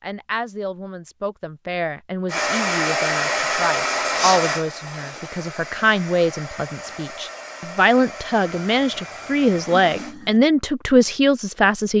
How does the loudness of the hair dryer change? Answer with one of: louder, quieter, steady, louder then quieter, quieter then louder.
quieter.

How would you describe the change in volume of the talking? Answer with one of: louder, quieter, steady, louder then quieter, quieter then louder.
louder.